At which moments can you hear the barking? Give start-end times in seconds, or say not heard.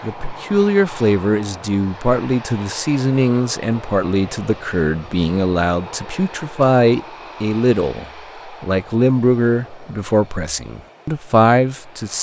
not heard.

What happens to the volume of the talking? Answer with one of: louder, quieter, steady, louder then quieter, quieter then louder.
steady.